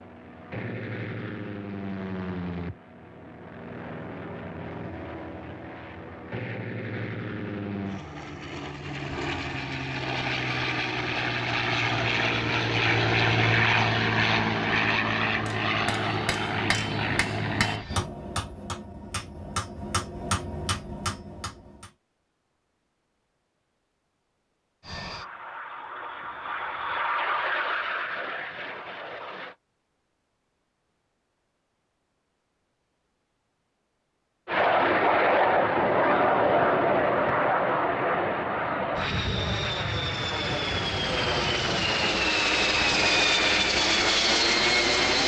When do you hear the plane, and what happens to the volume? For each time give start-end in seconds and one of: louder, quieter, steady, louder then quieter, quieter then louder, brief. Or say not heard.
0.0-18.1 louder
24.8-29.6 louder then quieter
34.5-45.2 quieter then louder.